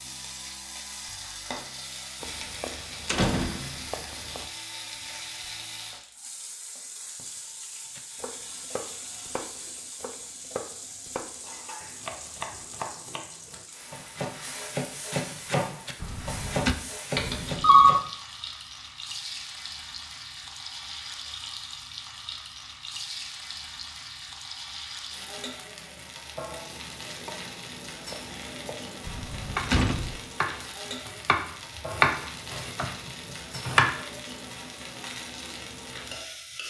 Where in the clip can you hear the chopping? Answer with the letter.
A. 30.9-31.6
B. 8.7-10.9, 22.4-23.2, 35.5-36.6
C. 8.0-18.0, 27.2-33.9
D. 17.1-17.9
C.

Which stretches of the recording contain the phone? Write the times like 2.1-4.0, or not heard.
17.1-17.9.